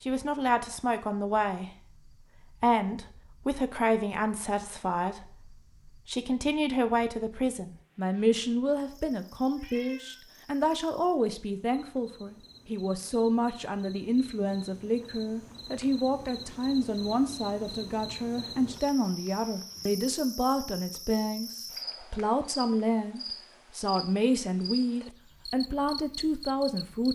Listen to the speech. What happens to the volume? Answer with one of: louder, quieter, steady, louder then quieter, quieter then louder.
steady.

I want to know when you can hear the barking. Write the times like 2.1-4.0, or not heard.
not heard.